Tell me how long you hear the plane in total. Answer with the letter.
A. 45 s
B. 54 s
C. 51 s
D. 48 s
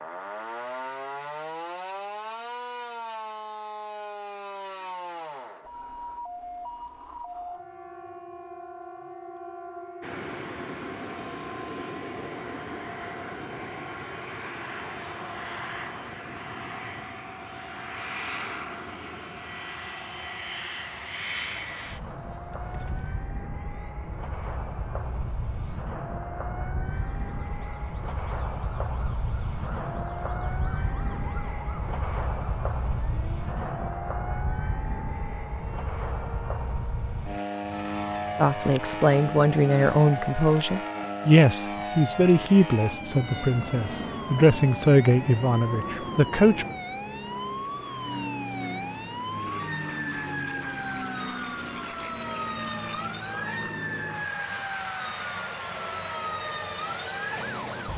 D.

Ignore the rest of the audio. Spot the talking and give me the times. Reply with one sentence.
You can hear the talking from 38.4 to 46.6 s.